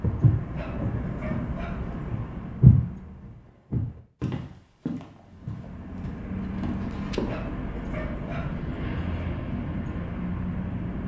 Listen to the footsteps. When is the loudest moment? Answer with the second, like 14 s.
3 s.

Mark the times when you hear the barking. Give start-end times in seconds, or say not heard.
0.6-1.9, 7.2-9.2.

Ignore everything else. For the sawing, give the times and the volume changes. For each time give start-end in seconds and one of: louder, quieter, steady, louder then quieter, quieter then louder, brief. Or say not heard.
not heard.